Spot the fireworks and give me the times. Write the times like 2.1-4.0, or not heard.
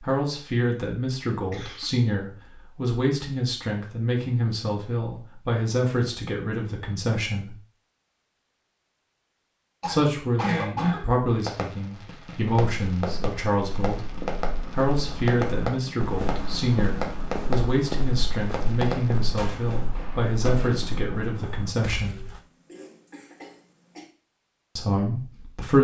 11.4-20.8.